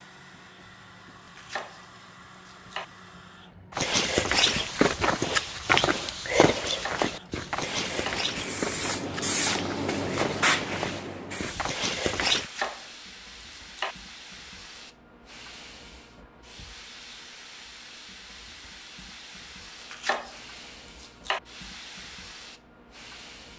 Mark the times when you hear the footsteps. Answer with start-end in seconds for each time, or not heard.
3.7-12.5.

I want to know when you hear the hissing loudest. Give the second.
10 s.